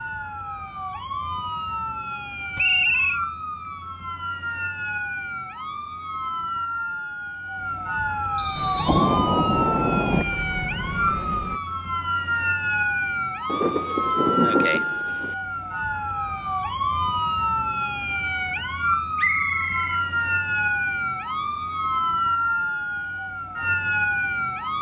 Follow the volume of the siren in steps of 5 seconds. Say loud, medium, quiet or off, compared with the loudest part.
medium, loud, loud, loud, loud.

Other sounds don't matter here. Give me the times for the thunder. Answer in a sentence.
You can hear the thunder from 8.8 to 10.2 s and from 13.4 to 15.3 s.